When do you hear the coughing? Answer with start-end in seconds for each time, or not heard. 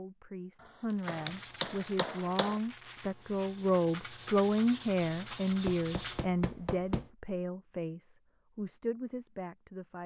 not heard.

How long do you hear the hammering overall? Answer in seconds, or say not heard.
3 s.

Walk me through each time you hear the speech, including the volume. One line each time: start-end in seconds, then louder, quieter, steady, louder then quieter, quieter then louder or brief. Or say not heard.
0.0-10.0 louder then quieter.